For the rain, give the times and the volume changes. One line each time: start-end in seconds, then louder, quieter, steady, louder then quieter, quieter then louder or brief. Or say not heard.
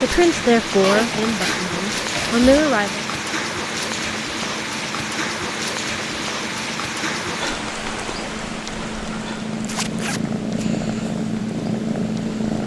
0.0-12.6 quieter.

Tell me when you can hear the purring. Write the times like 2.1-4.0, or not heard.
0.0-12.6.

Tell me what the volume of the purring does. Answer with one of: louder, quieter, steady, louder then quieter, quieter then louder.
louder.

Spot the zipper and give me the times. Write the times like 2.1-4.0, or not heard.
0.8-2.6, 9.6-10.7.